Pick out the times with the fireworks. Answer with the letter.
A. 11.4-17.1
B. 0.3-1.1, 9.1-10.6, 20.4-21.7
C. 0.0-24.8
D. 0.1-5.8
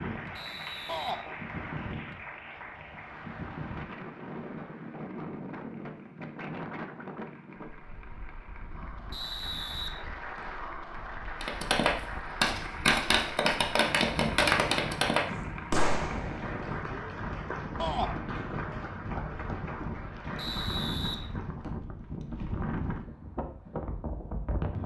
A.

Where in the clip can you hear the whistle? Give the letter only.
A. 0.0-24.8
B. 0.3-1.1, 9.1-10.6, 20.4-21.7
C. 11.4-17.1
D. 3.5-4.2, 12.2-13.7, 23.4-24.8
B.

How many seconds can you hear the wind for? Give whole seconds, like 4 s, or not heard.
25 s.